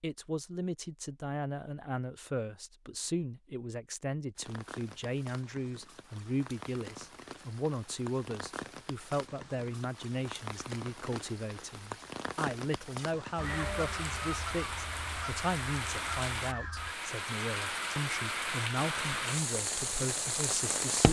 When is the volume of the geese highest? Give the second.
14 s.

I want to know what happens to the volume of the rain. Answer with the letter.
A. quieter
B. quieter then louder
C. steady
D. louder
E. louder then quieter
D.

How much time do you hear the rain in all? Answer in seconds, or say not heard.
17 s.